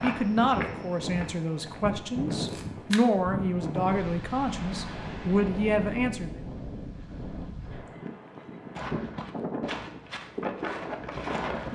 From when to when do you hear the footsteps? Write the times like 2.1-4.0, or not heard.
0.0-2.9, 8.8-11.7.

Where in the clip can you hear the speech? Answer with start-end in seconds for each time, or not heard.
0.0-6.4.